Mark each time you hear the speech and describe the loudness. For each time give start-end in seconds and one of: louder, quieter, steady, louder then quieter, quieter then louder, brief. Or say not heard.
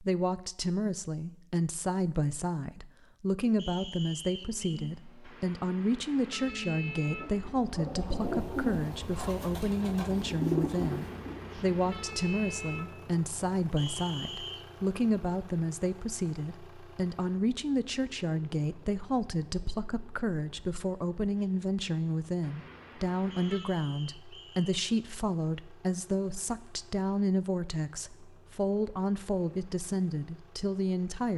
0.0-31.3 steady.